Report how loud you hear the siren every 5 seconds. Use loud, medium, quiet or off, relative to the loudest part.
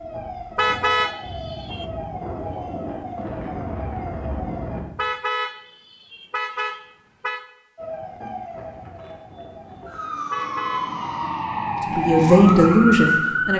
medium, quiet, loud.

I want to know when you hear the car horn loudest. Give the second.
1 s.